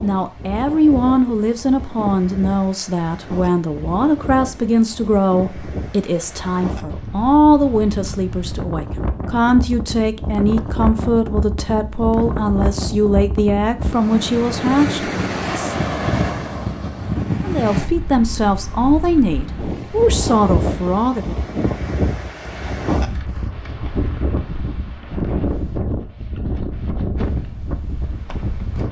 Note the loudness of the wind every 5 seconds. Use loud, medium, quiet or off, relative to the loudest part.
medium, medium, loud, loud, loud, loud.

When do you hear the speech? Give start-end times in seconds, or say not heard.
0.0-15.8, 17.4-21.4.